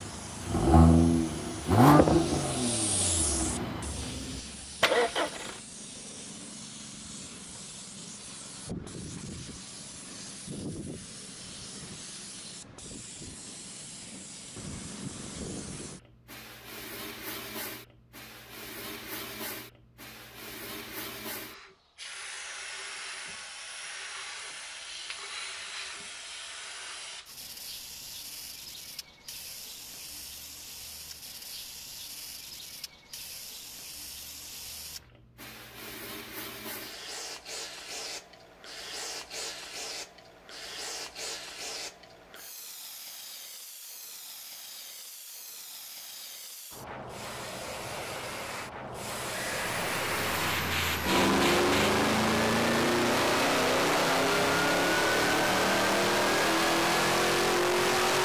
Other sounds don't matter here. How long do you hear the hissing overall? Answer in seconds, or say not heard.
52 s.